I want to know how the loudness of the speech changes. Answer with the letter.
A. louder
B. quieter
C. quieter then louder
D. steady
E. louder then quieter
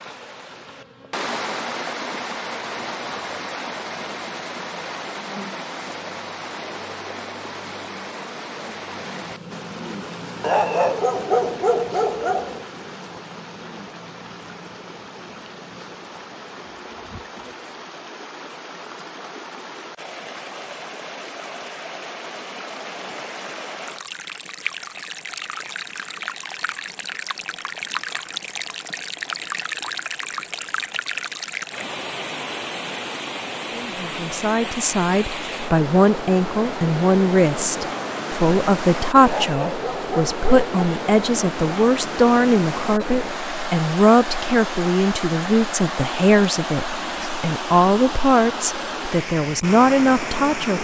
D.